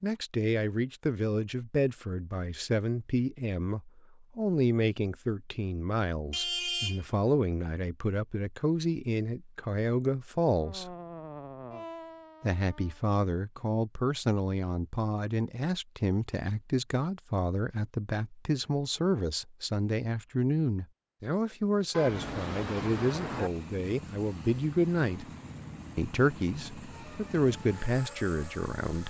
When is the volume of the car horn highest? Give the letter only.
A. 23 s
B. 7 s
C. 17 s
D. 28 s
B.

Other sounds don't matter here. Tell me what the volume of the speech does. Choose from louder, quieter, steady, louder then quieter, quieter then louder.
steady.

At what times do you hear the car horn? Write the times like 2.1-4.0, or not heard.
6.3-7.0, 21.9-23.5.